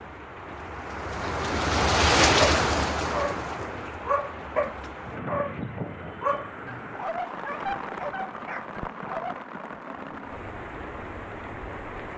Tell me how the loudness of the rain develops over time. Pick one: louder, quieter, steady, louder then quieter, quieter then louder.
quieter.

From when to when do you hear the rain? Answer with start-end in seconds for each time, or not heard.
0.0-12.1.